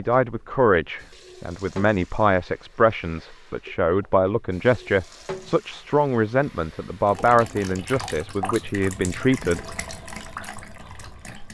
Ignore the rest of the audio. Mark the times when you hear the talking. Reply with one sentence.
You can hear the talking from 0.0 to 9.6 s.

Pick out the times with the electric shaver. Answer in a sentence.
The electric shaver can't be heard in this clip.